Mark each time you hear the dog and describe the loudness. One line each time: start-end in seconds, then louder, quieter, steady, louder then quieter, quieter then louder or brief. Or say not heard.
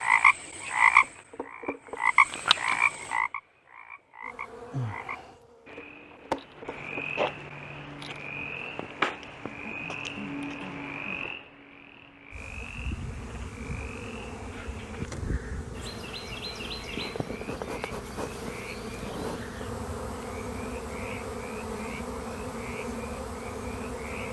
not heard.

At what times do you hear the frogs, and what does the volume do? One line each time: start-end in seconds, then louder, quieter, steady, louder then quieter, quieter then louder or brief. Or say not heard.
0.0-24.2 quieter.